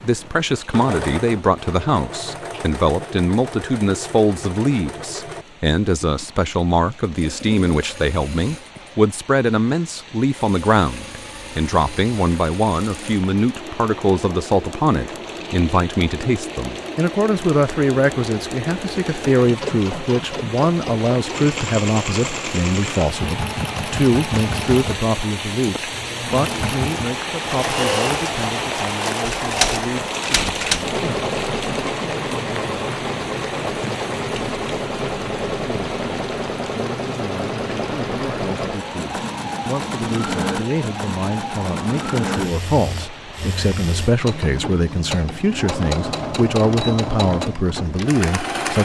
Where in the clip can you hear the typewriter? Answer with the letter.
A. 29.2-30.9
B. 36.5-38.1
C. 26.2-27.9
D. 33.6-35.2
A.